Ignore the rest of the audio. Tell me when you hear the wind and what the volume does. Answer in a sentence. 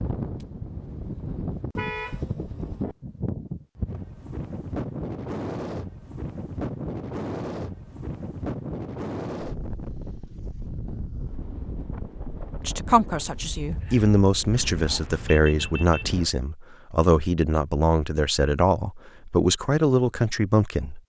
The wind can be heard from 0.0 to 16.2 s, getting quieter.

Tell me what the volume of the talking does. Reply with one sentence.
The loudness of the talking stays about the same.